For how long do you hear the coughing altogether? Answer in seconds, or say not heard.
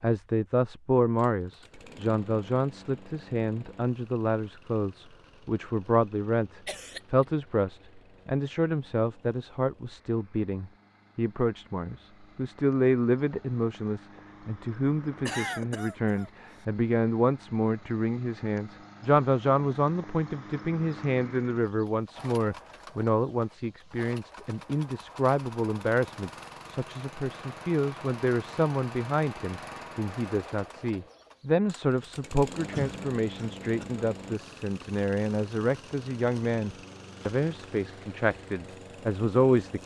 3 s.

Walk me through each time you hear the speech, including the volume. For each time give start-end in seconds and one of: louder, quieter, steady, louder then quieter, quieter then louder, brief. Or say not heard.
0.0-39.8 steady.